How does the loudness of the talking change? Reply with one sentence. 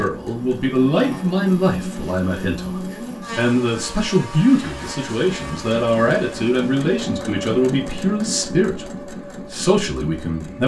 The loudness of the talking stays about the same.